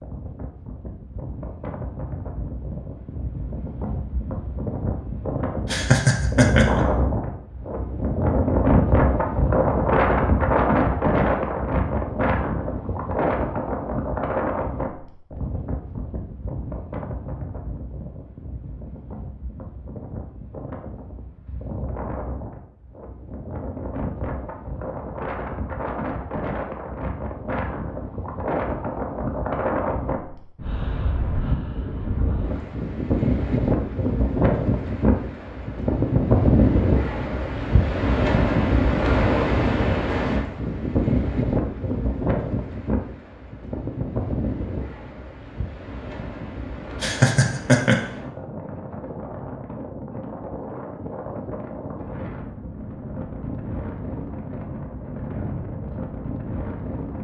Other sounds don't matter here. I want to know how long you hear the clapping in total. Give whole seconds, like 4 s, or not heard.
not heard.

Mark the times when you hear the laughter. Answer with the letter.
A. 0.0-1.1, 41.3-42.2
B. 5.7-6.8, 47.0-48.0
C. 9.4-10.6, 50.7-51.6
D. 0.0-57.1
B.